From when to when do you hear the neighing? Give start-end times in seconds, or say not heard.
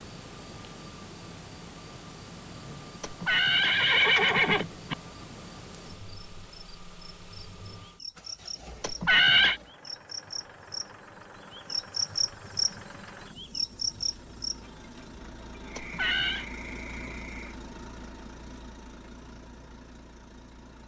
3.0-5.0, 8.8-9.6, 15.8-16.4.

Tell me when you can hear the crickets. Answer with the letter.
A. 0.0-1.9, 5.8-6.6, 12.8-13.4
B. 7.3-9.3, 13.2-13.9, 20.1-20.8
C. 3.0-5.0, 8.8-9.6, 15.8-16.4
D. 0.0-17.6
D.